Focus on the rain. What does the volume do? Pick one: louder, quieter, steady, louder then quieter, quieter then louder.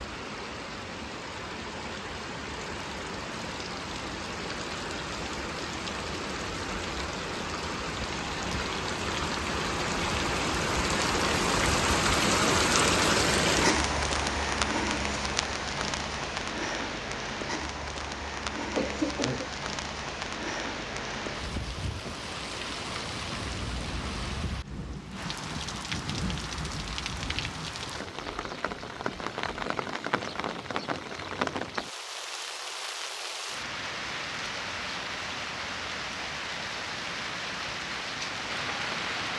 louder then quieter.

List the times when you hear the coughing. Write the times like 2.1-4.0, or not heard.
18.6-19.5.